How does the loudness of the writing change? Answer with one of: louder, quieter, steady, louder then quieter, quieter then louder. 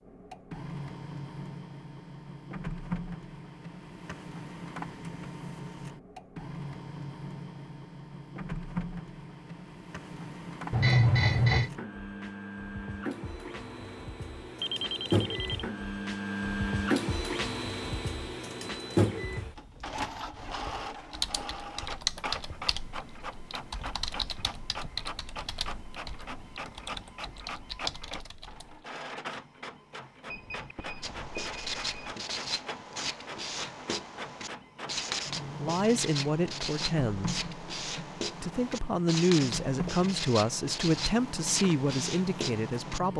steady.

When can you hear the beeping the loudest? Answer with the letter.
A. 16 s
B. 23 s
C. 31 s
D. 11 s
D.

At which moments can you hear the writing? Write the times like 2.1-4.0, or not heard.
31.0-43.0.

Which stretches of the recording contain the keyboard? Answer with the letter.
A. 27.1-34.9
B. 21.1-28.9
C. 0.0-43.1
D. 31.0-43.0
B.